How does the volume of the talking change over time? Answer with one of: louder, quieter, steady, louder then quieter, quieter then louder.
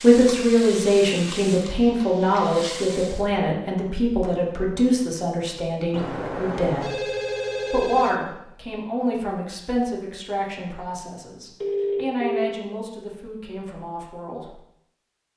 quieter.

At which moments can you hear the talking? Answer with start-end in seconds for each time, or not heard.
0.0-7.0, 7.7-14.6.